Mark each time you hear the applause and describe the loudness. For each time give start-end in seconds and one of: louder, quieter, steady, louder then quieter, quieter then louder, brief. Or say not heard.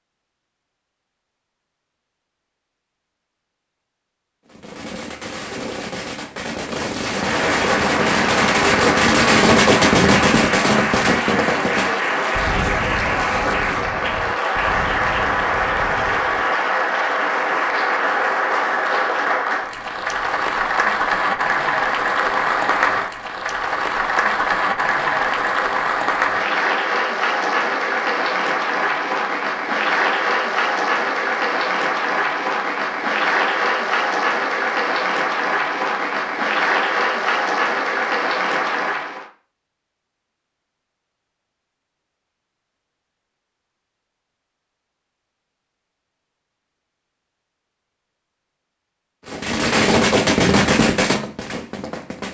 7.0-39.3 steady.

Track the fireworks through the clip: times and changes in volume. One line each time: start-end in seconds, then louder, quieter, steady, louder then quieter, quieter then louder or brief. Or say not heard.
4.5-16.5 louder then quieter
49.2-52.2 brief.